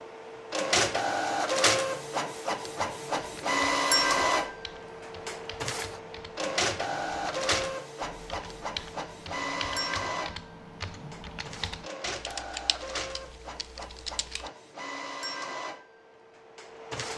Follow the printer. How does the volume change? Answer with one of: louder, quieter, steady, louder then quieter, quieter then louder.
quieter.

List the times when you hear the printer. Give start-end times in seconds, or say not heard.
0.0-17.1.